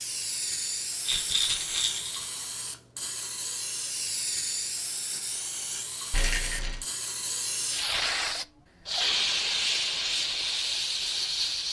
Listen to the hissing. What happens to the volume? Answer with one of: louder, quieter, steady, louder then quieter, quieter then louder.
louder.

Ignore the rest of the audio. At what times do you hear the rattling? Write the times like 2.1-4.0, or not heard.
1.1-2.2, 6.1-6.8.